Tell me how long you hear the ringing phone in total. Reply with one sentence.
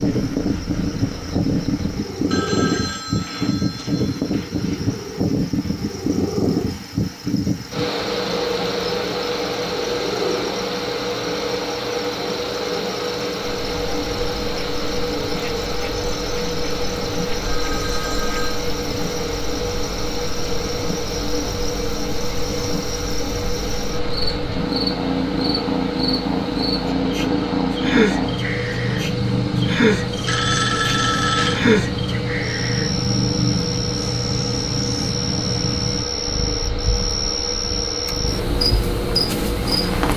You can hear the ringing phone for 5 seconds altogether.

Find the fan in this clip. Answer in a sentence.
The fan can be heard from 0.0 to 40.1 s.